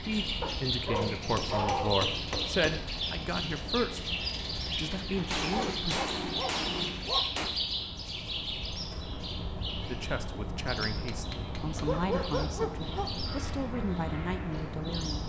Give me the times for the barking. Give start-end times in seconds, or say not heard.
0.4-2.0, 5.5-7.4, 11.8-13.2.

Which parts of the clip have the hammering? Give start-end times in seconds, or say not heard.
1.4-2.9, 5.2-7.5, 10.6-11.8.